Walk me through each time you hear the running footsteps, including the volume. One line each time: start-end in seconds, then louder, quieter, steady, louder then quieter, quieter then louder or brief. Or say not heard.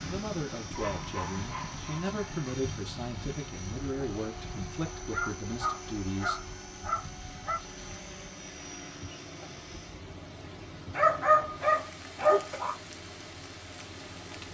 not heard.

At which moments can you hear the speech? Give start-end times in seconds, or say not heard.
0.0-6.4.